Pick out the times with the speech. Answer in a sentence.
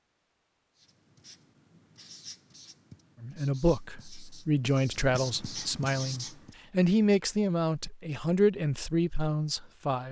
The speech can be heard from 3.2 to 10.0 s.